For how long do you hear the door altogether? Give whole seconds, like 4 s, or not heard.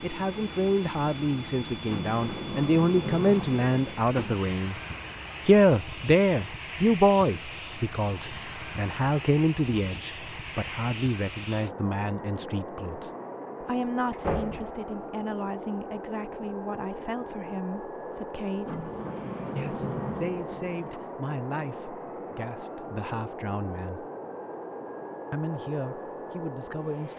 5 s.